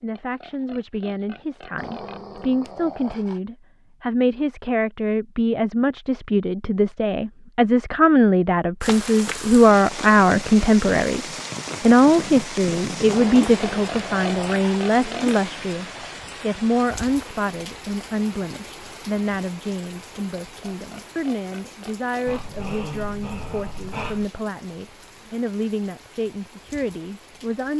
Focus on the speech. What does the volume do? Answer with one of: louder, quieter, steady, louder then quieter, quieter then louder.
louder then quieter.